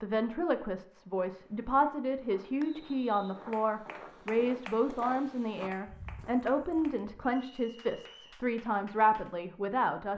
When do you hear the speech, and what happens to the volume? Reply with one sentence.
The speech can be heard from 0.0 to 10.1 s, at a steady volume.